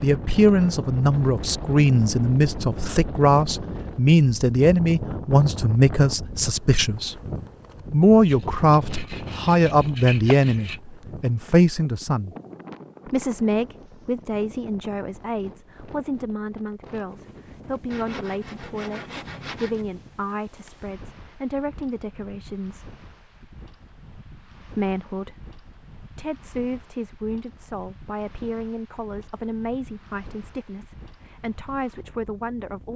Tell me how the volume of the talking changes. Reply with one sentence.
The volume of the talking goes down.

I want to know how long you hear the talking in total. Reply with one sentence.
The talking can be heard for 30 seconds in total.